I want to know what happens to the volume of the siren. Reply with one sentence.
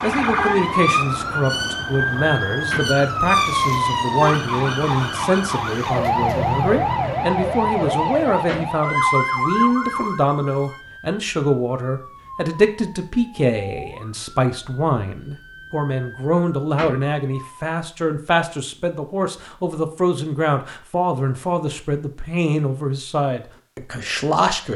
The volume of the siren goes down.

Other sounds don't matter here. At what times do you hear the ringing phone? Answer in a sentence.
The ringing phone can't be heard in this clip.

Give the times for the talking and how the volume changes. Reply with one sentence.
You can hear the talking from 0.0 to 24.7 s, at a steady volume.